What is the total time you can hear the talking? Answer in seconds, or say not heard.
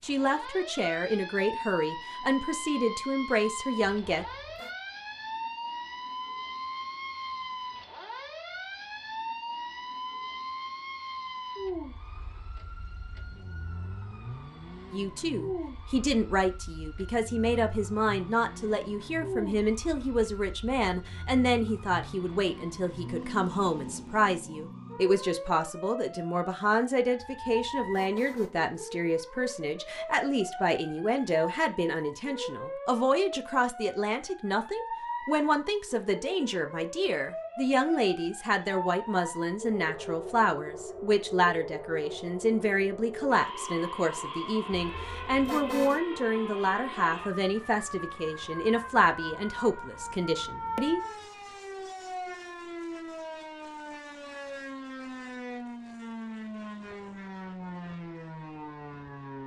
40 s.